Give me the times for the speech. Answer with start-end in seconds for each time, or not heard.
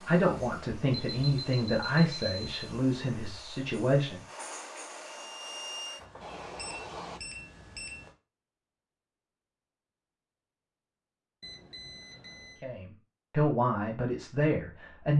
0.0-4.2, 12.6-15.1.